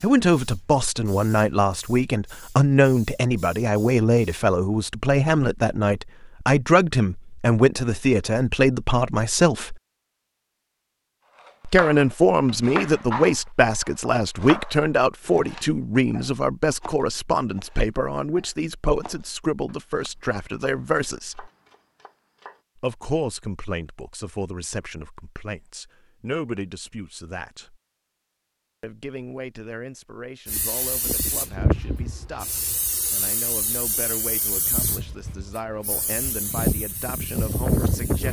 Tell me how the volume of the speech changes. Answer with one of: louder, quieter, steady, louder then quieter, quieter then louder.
quieter.